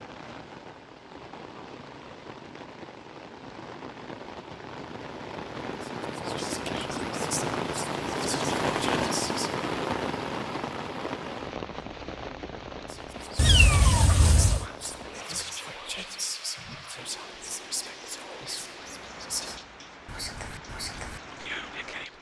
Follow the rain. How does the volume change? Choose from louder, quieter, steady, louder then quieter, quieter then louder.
louder then quieter.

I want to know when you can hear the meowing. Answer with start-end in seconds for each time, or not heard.
13.3-14.7.